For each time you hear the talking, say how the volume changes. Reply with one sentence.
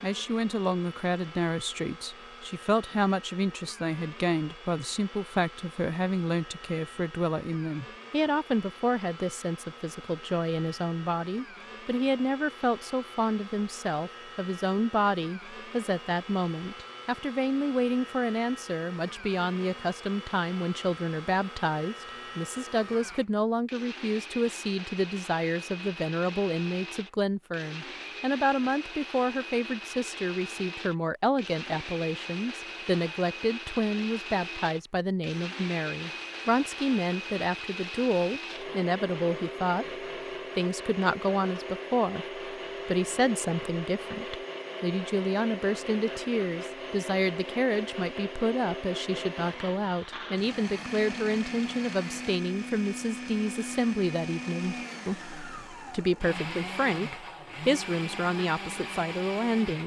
You can hear the talking from 0.0 to 39.9 s, at a steady volume; and from 40.5 to 59.8 s, at a steady volume.